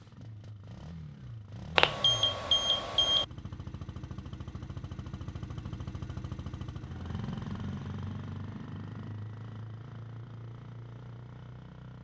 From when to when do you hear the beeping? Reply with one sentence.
You can hear the beeping from 1.8 to 3.2 s.